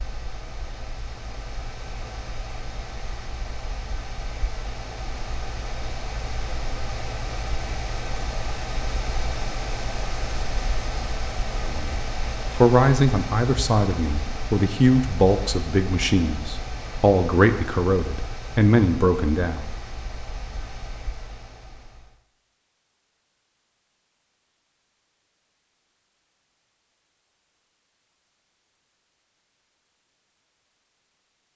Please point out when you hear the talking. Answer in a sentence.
You can hear the talking from 11.7 to 19.7 s.